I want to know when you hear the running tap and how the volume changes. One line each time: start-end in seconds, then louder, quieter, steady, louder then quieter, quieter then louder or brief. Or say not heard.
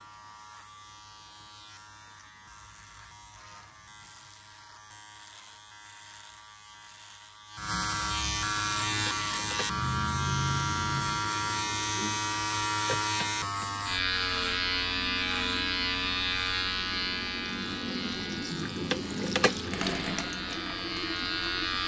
8.6-21.8 louder.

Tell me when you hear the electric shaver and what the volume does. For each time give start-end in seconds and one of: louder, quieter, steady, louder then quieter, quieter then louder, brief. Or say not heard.
0.0-21.8 louder then quieter.